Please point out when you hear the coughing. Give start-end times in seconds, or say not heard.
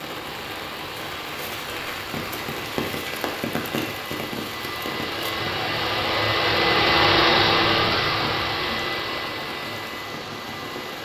not heard.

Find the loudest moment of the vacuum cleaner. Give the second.
7 s.